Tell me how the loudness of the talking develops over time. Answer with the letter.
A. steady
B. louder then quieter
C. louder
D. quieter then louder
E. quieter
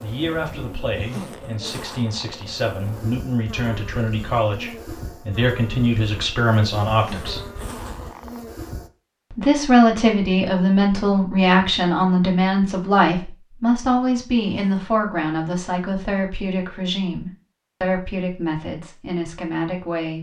B.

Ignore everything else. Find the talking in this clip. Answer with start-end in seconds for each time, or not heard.
0.0-7.4, 9.3-20.1.